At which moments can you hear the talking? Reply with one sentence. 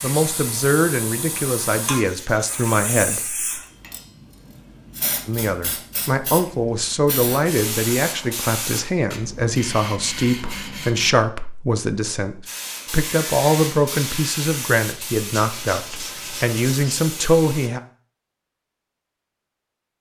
You can hear the talking from 0.0 to 3.5 s and from 5.2 to 17.8 s.